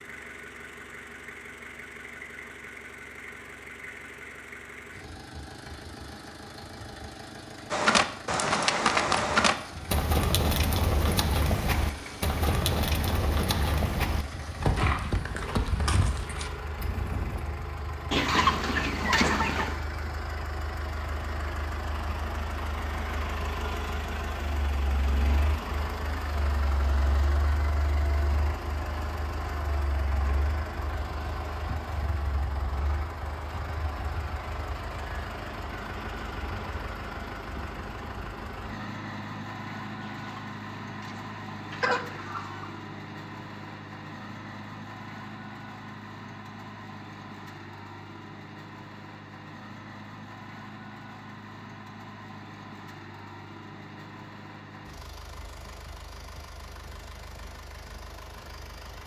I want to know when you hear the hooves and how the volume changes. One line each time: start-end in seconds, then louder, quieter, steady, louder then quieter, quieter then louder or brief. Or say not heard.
7.7-17.4 quieter.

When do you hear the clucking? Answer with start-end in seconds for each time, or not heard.
18.1-19.8, 40.0-42.7.